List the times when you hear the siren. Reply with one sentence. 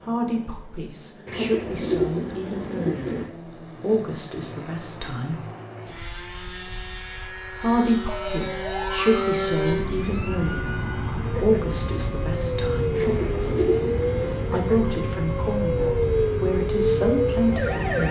You can hear the siren from 8.1 to 18.0 s.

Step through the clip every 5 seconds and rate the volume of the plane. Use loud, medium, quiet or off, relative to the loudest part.
medium, loud, loud, loud.